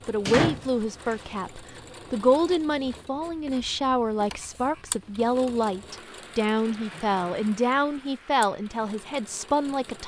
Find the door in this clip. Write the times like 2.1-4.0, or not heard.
0.2-1.1.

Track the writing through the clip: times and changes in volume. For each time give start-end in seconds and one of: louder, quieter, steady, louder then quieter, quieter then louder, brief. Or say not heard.
not heard.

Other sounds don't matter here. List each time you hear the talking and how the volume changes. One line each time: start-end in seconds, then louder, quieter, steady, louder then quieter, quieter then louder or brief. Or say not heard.
0.1-10.0 steady.